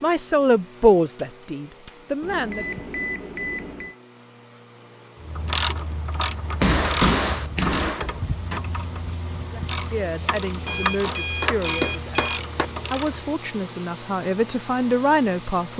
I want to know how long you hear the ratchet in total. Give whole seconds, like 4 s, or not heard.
8 s.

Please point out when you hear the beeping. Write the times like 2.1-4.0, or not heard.
2.2-4.0, 10.7-12.4.